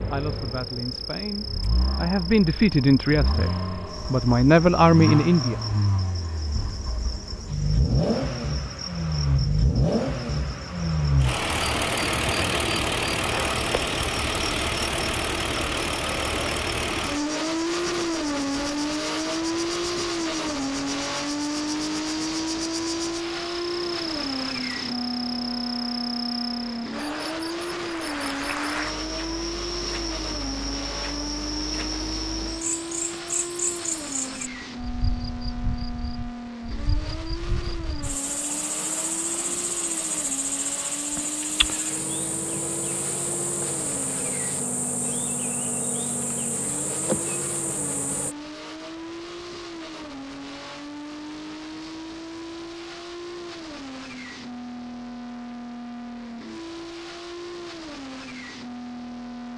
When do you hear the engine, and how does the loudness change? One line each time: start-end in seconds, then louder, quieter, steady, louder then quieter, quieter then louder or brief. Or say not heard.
0.0-59.5 quieter.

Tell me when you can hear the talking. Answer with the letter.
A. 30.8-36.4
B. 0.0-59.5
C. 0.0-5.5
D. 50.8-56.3
C.